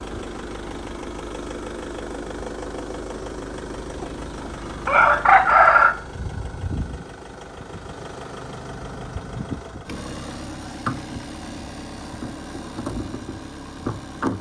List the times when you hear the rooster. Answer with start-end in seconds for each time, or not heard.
4.0-6.0.